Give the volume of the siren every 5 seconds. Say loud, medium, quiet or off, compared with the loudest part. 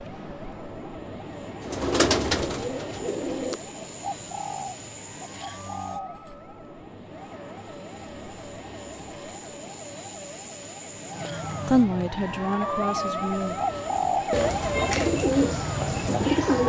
quiet, quiet, loud, loud.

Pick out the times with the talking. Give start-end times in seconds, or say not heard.
11.7-13.6.